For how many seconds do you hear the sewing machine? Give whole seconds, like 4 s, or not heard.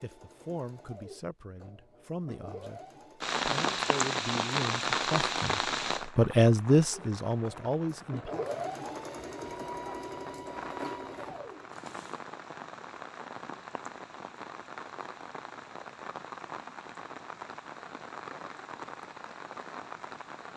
9 s.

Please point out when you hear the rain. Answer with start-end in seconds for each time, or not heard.
3.2-20.5.